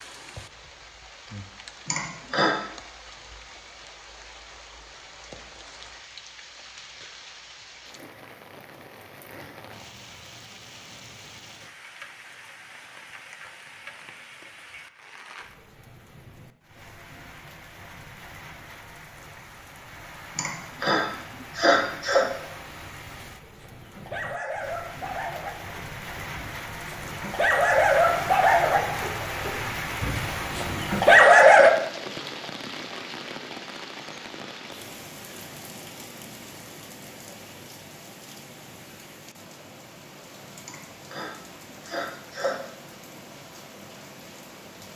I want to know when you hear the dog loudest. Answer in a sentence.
The volume of the dog peaks at 31 seconds.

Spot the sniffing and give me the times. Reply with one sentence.
The sniffing can be heard from 1.9 to 2.5 s, from 20.4 to 22.2 s and from 40.6 to 42.6 s.